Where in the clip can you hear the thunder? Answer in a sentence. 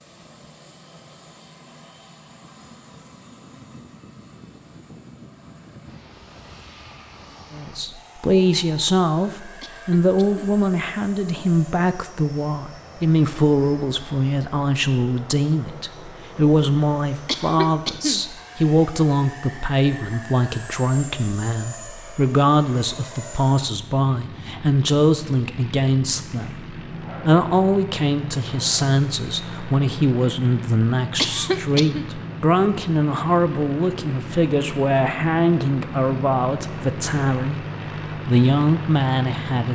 You can't hear the thunder here.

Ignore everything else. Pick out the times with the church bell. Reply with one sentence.
The church bell can't be heard in this clip.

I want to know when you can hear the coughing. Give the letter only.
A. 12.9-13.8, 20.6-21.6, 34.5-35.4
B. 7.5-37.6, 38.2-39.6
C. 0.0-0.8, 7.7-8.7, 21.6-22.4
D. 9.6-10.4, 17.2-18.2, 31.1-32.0
D.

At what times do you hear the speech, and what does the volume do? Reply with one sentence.
You can hear the speech from 7.5 to 37.6 s, at a steady volume; and briefly from 38.2 to 39.6 s.